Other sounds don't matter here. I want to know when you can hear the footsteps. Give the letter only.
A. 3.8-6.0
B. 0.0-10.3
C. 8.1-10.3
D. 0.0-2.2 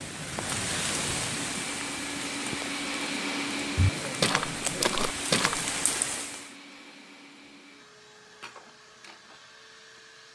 A.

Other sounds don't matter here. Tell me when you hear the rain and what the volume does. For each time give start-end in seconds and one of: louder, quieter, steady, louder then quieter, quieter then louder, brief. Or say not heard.
0.0-6.5 quieter then louder.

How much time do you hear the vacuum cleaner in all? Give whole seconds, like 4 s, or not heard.
10 s.